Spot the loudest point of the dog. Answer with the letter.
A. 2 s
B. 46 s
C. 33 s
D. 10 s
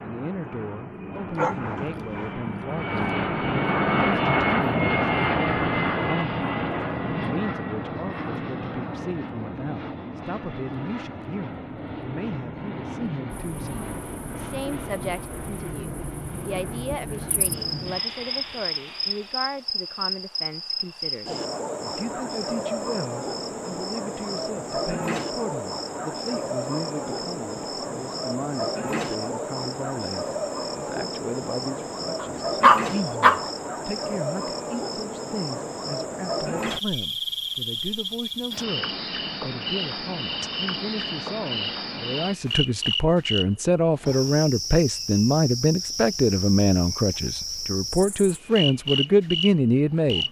C.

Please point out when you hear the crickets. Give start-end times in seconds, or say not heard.
13.3-50.2.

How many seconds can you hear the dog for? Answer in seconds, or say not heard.
2 s.